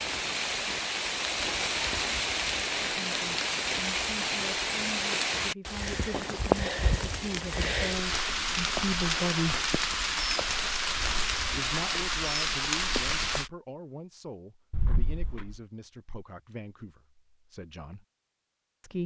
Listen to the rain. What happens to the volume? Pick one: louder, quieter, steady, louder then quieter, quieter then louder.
steady.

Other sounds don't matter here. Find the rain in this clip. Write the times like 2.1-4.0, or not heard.
0.0-13.5.